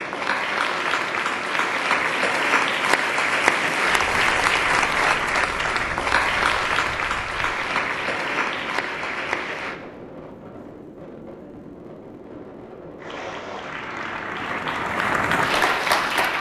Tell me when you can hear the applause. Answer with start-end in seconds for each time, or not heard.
0.0-9.8, 12.9-16.3.